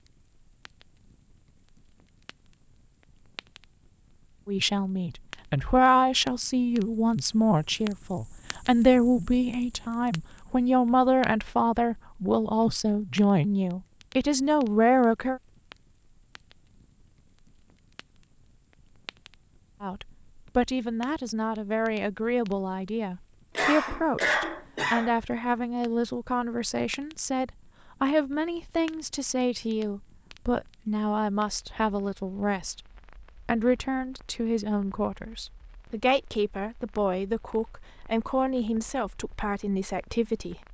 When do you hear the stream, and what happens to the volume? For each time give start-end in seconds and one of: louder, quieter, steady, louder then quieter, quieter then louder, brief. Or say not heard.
not heard.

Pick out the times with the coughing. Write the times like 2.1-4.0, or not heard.
23.6-25.1.